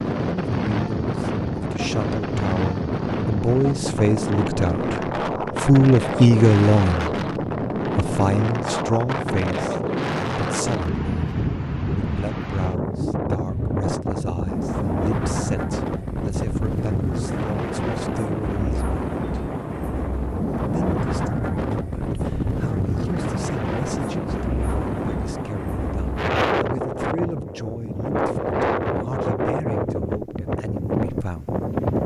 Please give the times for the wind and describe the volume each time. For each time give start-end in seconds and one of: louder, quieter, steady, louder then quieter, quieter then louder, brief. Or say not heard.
0.0-32.0 steady.